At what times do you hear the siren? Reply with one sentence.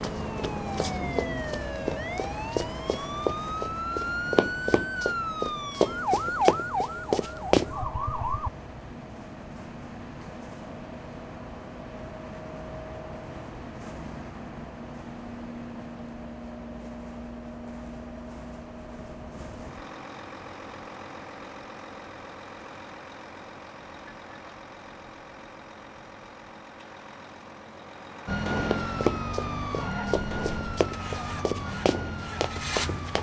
The siren can be heard from 0.2 to 8.5 s and from 28.2 to 33.1 s.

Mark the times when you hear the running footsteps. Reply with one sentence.
You can hear the running footsteps from 0.0 to 7.7 s and from 28.6 to 33.1 s.